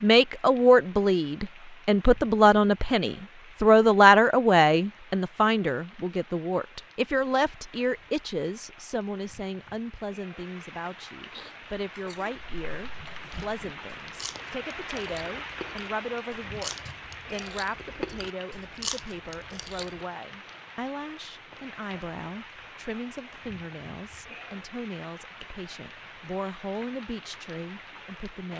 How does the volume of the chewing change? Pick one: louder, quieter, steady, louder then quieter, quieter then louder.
louder.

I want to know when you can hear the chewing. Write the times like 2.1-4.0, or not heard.
11.3-20.1.